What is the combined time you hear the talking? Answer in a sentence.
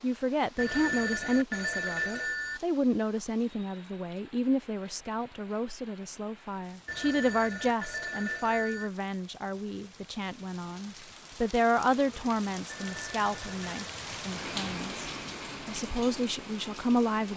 The talking can be heard for 17 seconds in total.